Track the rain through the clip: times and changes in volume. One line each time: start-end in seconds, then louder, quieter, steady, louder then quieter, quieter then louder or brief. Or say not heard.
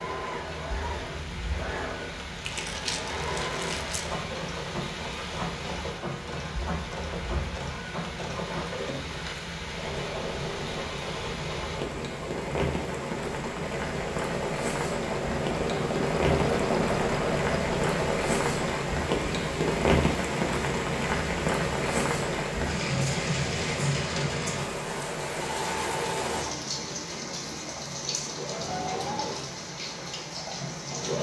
0.0-31.1 louder then quieter.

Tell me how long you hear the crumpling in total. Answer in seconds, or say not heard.
2 s.